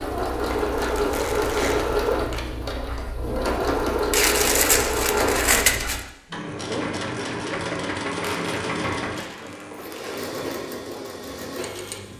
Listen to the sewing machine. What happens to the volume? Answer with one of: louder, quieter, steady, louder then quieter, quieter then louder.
quieter.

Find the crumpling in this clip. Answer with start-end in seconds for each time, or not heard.
0.5-2.5, 4.1-6.0, 8.2-10.2.